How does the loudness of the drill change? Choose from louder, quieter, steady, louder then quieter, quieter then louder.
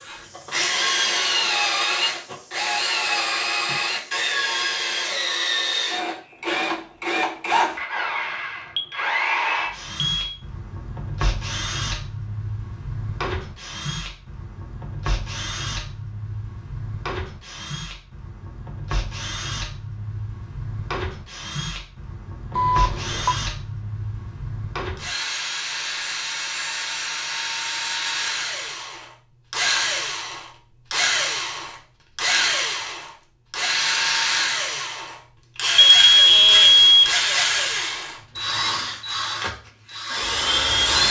quieter then louder.